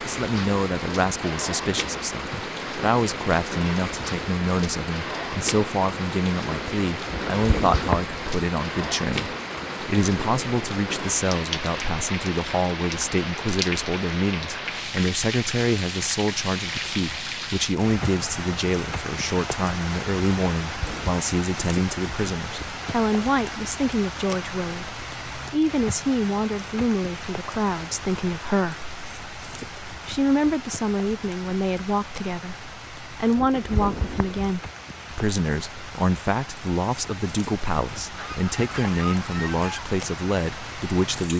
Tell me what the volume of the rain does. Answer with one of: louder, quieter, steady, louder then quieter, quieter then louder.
quieter.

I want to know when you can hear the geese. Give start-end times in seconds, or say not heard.
38.1-39.9.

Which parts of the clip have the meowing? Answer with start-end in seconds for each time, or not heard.
7.0-8.2, 20.6-21.2, 33.4-34.5.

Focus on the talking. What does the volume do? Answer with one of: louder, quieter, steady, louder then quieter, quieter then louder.
steady.